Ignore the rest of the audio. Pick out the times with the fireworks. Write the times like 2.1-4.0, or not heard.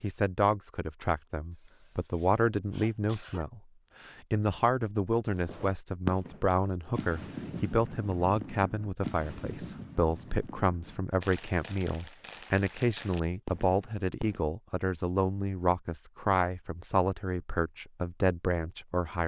5.3-14.4.